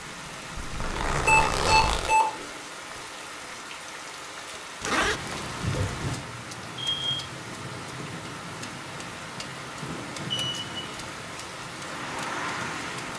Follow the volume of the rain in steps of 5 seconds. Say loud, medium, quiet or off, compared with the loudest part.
medium, loud, loud.